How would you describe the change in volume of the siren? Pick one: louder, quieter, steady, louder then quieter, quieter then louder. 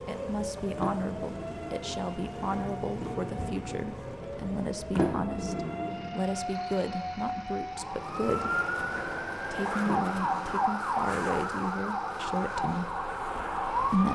louder.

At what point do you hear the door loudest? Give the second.
5 s.